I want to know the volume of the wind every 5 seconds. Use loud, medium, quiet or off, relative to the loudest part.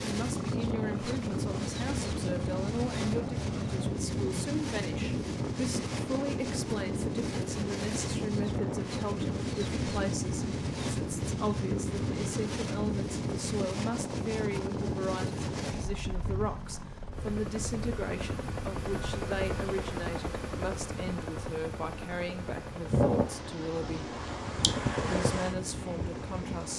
loud, loud, loud, medium, loud, loud.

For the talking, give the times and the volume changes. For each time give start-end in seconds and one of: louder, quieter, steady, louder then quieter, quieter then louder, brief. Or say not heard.
0.0-24.1 steady
25.1-26.7 brief.